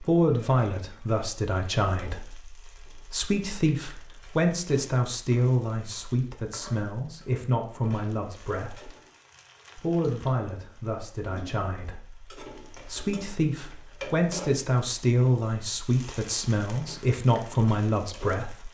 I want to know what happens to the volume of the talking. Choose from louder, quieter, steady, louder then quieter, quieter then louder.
steady.